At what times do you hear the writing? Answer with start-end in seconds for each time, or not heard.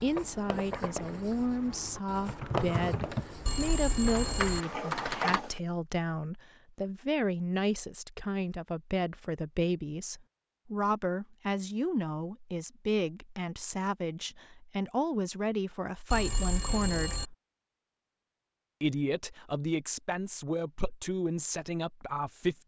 0.0-5.6.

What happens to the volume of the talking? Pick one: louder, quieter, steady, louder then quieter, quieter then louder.
steady.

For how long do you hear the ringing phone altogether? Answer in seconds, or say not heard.
2 s.